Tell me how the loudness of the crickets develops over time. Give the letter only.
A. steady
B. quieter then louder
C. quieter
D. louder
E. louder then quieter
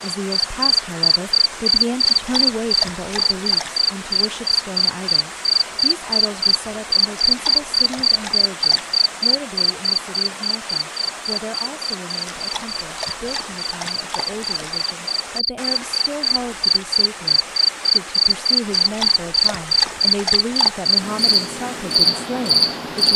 B.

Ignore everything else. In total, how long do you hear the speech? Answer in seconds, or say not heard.
23 s.